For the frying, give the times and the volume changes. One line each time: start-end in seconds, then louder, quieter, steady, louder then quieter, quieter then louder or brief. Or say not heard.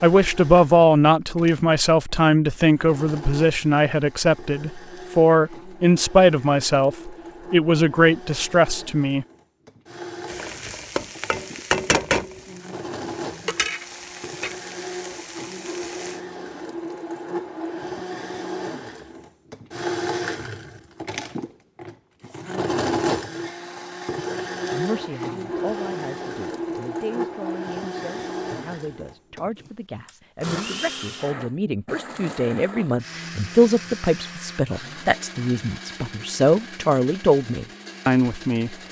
10.2-16.2 louder then quieter.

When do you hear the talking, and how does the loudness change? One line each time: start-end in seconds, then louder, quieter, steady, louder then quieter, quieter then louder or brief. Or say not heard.
0.0-9.2 steady
24.7-38.8 louder.